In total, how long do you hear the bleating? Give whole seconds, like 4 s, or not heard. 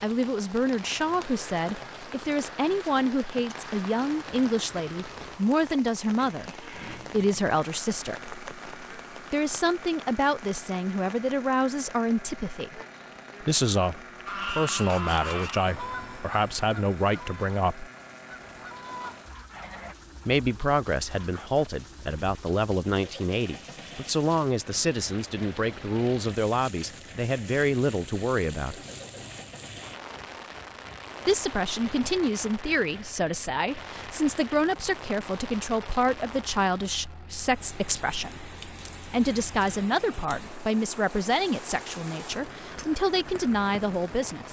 not heard.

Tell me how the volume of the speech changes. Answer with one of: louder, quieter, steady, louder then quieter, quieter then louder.
steady.